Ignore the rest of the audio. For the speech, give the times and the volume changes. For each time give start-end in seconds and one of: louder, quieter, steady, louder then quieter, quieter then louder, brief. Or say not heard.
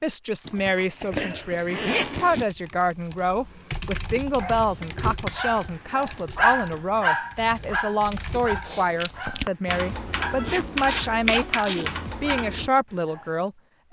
0.0-13.8 steady.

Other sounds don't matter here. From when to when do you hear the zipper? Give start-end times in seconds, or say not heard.
0.5-2.5, 4.8-5.3, 10.3-11.9.